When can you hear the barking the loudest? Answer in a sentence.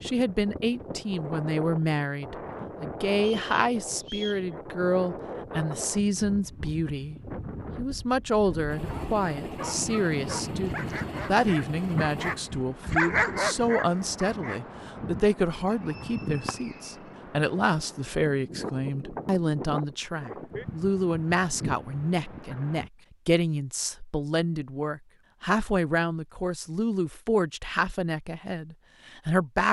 The volume of the barking peaks at 13 seconds.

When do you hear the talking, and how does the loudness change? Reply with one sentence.
The talking can be heard from 0.0 to 7.2 s, at a steady volume; and from 7.8 to 29.6 s, at a steady volume.